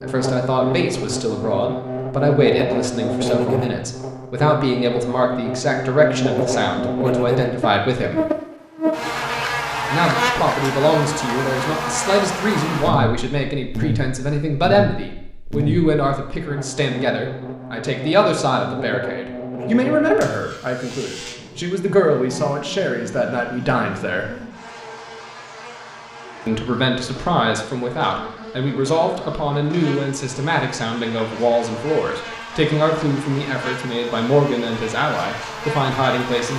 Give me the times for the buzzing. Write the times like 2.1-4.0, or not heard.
0.0-36.5.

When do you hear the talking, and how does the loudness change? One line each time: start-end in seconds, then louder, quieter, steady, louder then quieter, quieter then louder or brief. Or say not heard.
0.0-8.2 steady
9.8-24.4 steady
26.4-36.5 steady.